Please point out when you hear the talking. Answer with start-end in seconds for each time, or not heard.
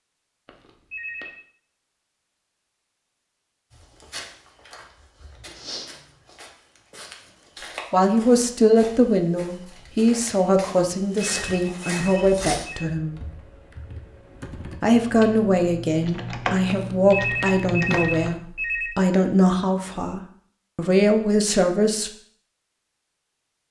7.9-13.2, 14.8-22.1.